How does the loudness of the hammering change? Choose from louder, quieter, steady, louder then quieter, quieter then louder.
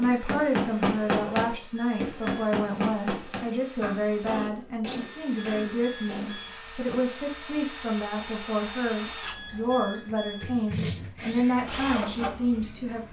quieter.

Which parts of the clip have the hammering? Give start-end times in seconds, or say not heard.
0.0-7.5.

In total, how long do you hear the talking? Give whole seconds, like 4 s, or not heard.
13 s.